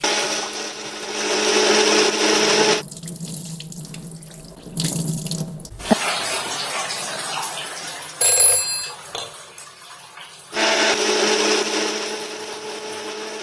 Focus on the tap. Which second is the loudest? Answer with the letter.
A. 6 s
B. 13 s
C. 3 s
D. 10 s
A.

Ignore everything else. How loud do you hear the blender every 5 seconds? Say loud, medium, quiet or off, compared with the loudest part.
loud, off, loud.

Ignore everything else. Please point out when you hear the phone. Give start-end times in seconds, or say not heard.
8.2-8.9.